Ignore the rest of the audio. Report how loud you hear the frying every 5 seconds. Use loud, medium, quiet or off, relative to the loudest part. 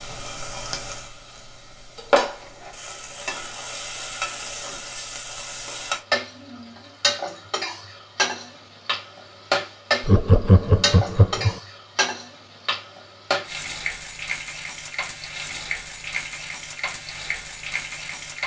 loud, loud, loud, medium.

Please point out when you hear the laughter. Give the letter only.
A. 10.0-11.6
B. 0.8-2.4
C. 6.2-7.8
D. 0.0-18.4
A.